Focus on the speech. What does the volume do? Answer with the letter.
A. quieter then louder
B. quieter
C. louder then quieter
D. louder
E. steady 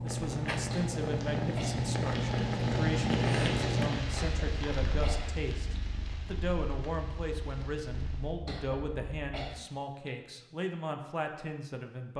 E.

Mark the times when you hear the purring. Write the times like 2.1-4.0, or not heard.
0.0-9.3.